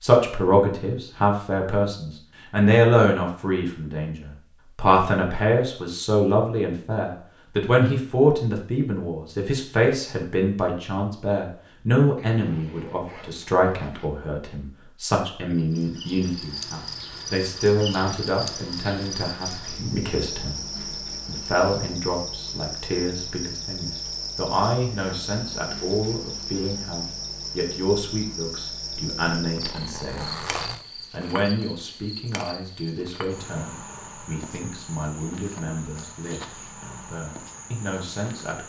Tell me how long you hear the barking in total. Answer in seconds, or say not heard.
not heard.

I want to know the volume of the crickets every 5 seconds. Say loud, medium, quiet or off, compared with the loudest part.
off, off, off, loud, loud, loud, medium, medium.